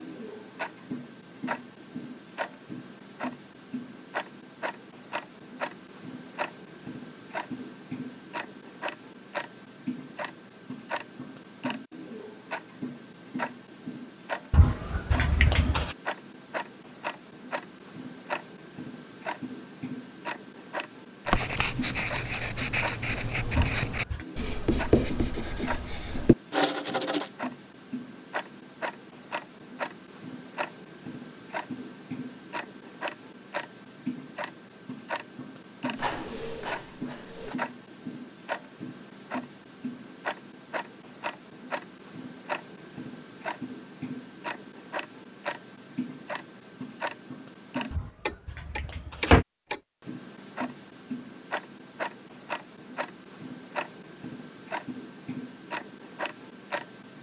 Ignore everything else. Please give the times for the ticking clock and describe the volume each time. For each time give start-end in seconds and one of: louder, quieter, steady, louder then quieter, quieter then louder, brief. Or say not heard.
0.0-57.1 steady.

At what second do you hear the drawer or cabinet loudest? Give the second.
49 s.